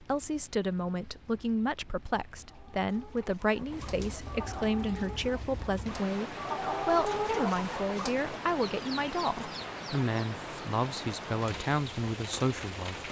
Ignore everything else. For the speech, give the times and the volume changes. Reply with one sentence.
You can hear the speech from 0.0 to 13.0 s, at a steady volume.